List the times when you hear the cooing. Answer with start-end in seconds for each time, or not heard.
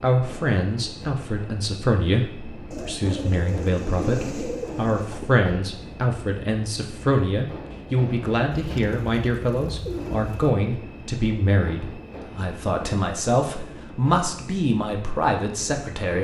2.7-5.4, 8.5-10.5.